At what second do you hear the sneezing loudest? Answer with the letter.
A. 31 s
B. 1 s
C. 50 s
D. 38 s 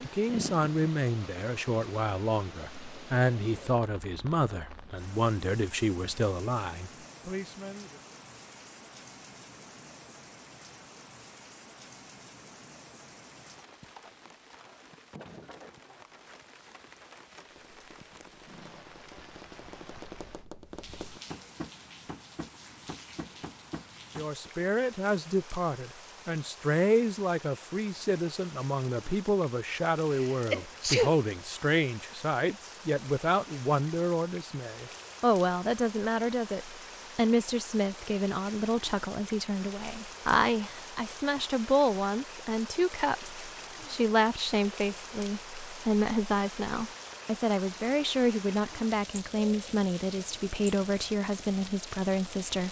A.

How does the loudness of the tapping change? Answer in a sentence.
The loudness of the tapping goes up.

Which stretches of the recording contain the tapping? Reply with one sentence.
The tapping can be heard from 17.4 to 24.5 s.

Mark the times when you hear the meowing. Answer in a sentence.
The meowing can't be heard in this clip.